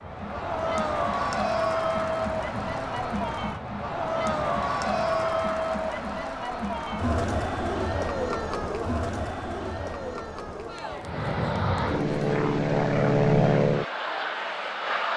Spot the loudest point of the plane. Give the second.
13 s.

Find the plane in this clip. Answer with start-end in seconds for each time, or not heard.
0.0-5.5, 11.0-15.1.